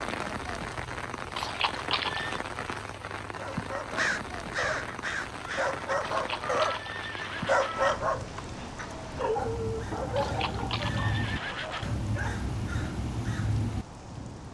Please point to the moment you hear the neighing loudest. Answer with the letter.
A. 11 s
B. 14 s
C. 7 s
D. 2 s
D.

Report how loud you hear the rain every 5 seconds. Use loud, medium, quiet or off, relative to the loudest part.
loud, loud, medium.